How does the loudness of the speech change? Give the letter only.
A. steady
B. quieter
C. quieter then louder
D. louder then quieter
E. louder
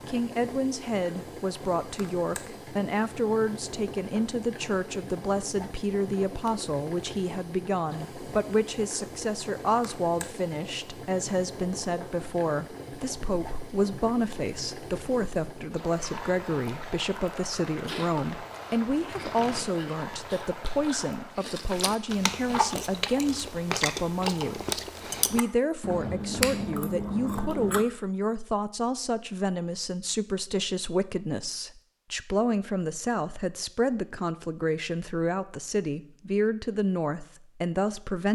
A.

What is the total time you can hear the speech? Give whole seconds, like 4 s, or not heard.
38 s.